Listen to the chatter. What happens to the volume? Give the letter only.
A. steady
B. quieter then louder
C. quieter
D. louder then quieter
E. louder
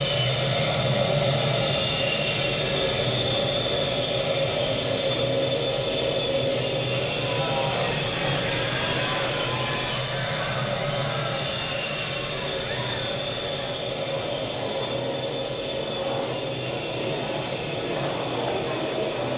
B.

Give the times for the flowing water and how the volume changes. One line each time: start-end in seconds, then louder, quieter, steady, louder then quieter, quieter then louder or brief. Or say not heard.
not heard.